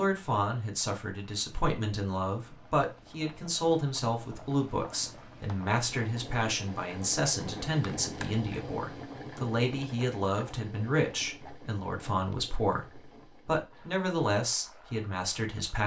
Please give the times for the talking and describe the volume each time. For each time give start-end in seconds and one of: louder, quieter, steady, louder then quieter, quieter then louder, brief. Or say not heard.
0.0-15.8 steady.